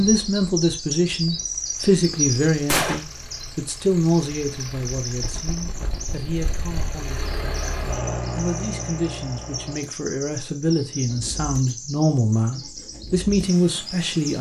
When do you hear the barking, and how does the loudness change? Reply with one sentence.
The barking can't be heard in this clip.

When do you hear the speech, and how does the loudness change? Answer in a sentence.
The speech can be heard from 0.0 to 7.7 s, getting quieter; and from 8.3 to 14.3 s, getting louder.